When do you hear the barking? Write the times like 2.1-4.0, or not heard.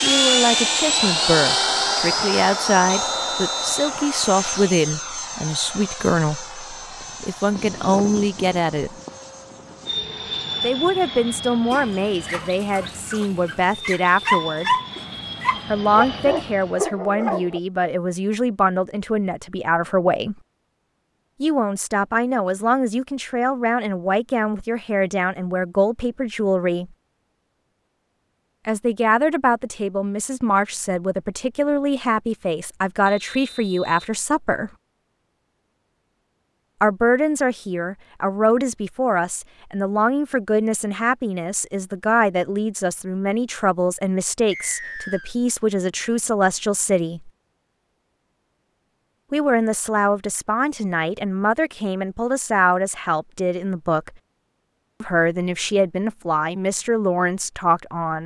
11.7-17.6.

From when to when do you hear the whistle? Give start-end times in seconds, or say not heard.
2.9-4.0, 33.0-34.1, 44.5-45.4.